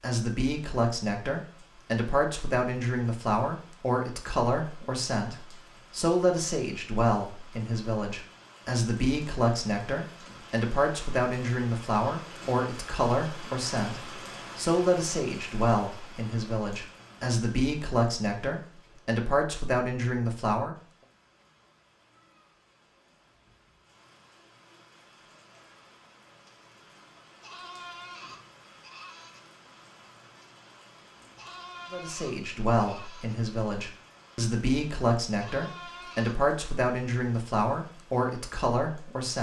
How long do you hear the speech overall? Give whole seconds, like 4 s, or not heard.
28 s.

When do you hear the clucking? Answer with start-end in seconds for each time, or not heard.
not heard.